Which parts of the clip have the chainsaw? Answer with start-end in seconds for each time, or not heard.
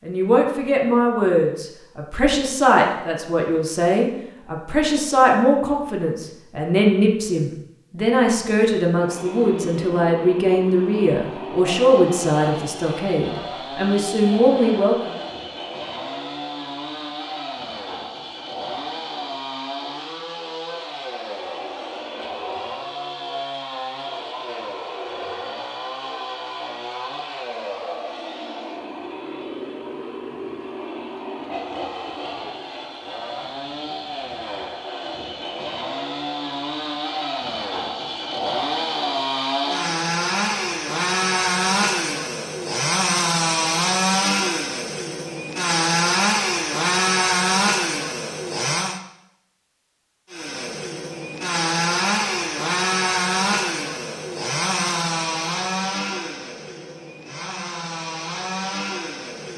8.9-49.0, 50.3-59.5.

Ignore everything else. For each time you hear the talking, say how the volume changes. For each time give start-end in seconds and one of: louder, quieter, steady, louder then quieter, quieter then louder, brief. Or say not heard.
0.1-15.1 steady.